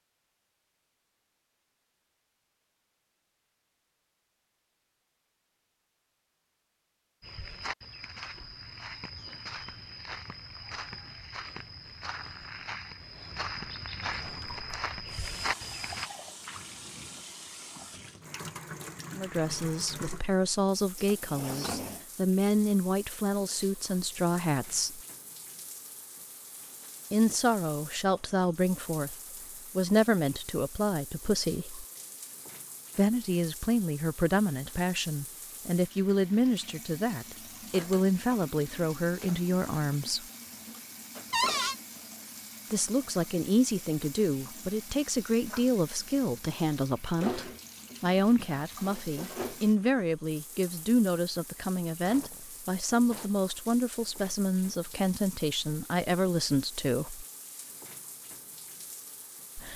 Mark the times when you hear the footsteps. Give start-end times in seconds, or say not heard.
7.2-16.1.